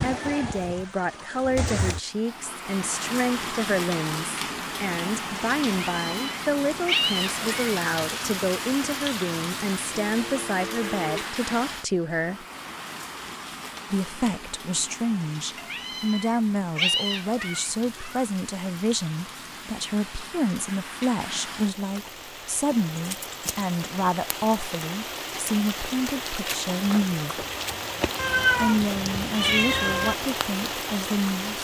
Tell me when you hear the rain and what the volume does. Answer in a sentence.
You can hear the rain from 0.0 to 31.5 s, getting quieter then louder.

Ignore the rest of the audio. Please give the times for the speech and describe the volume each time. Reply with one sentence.
The speech can be heard from 0.0 to 12.4 s, at a steady volume; from 13.9 to 27.4 s, at a steady volume; and briefly from 28.6 to 31.5 s.